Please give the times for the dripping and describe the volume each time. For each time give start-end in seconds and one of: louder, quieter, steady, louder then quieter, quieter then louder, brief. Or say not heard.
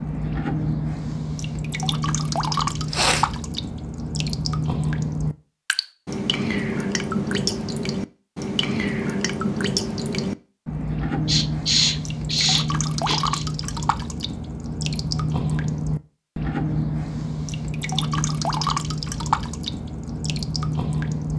0.0-21.3 steady.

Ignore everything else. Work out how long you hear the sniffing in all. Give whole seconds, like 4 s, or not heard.
3 s.